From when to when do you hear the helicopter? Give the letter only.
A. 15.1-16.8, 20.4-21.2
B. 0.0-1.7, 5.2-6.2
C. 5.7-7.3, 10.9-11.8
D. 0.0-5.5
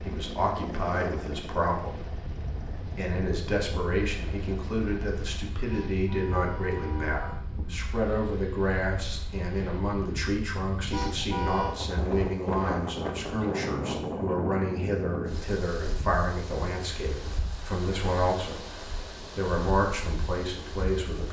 D.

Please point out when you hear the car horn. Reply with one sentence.
The car horn can be heard from 5.7 to 7.3 s and from 10.9 to 11.8 s.